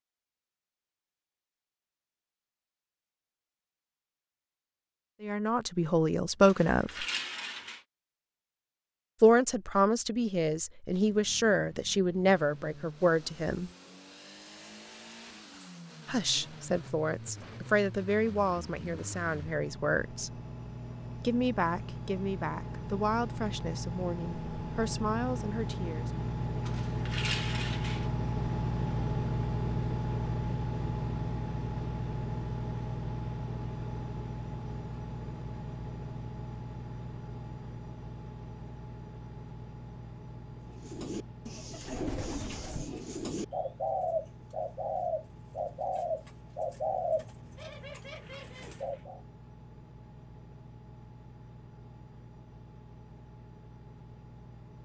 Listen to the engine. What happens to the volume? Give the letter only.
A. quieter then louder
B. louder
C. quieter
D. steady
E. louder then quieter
E.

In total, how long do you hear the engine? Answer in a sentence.
You can hear the engine for 44 seconds altogether.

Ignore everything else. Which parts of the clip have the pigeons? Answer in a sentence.
You can hear the pigeons from 40.6 to 49.2 s.